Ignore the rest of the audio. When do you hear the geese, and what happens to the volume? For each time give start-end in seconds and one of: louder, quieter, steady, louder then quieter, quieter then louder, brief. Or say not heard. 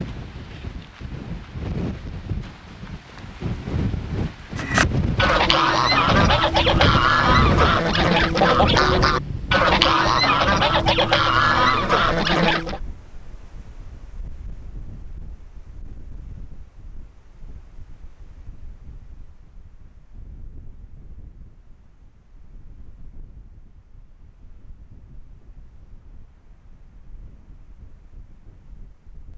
4.5-12.8 steady.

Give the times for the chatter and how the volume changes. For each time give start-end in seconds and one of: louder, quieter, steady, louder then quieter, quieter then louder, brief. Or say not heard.
not heard.